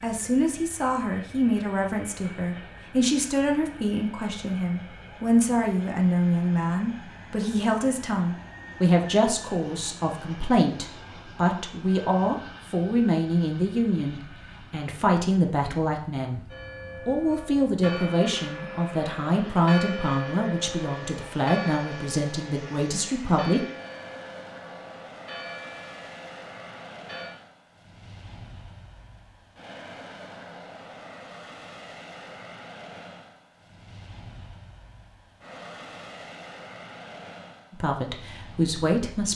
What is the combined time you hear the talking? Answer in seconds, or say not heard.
25 s.